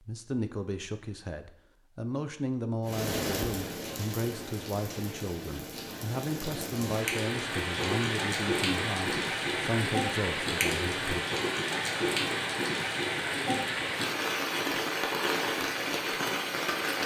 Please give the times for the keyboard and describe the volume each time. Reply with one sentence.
You can't hear the keyboard here.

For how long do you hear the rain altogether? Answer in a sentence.
The rain can be heard for 14 seconds in total.